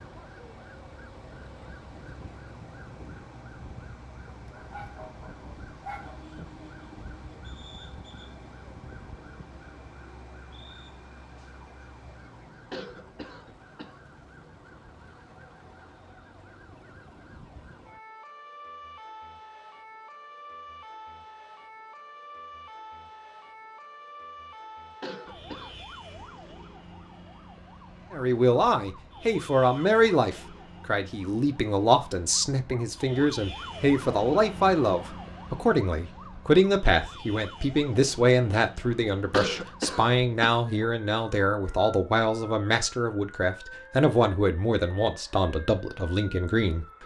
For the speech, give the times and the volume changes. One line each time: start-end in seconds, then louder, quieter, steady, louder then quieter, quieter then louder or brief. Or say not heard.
28.1-47.0 steady.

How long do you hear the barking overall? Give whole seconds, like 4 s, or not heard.
2 s.